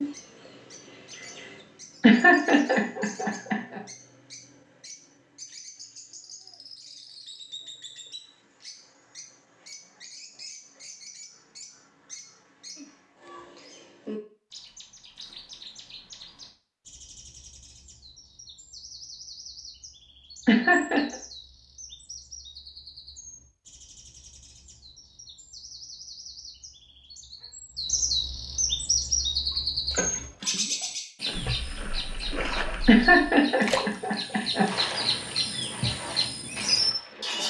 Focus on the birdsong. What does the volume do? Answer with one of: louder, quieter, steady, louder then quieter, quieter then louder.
louder.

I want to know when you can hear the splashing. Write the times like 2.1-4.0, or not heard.
28.6-37.4.